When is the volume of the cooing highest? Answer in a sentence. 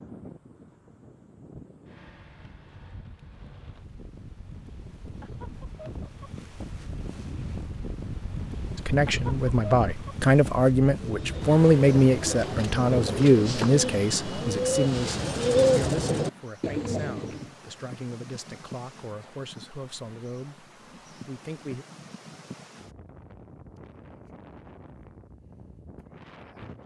The volume of the cooing peaks at 16 seconds.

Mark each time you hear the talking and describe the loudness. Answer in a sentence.
You can hear the talking from 8.8 to 21.9 s, getting quieter.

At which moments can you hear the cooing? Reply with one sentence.
You can hear the cooing from 11.0 to 17.6 s.